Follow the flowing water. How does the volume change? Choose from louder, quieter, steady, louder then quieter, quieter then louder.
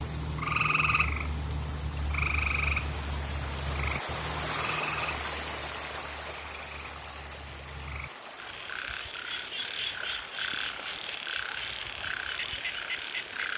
louder then quieter.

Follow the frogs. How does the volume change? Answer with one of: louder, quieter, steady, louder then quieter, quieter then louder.
quieter then louder.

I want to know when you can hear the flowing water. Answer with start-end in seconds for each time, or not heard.
0.0-13.5.